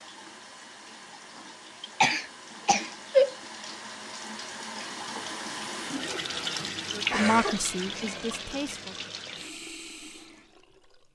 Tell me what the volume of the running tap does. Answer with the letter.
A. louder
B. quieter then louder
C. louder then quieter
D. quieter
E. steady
C.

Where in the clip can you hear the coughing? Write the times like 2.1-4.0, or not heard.
2.0-3.4, 7.1-8.0.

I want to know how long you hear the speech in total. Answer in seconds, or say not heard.
2 s.